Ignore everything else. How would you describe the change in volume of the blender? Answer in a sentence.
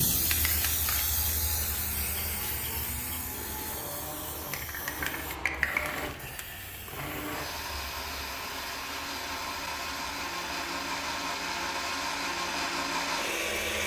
The volume of the blender goes up.